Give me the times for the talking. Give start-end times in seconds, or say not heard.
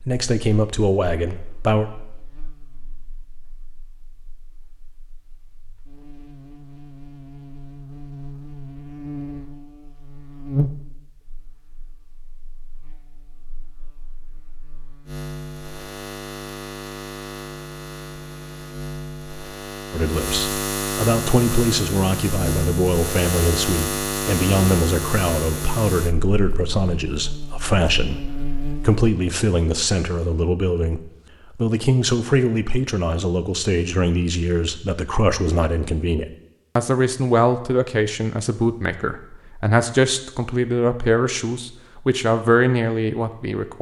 0.1-1.9, 19.9-43.7.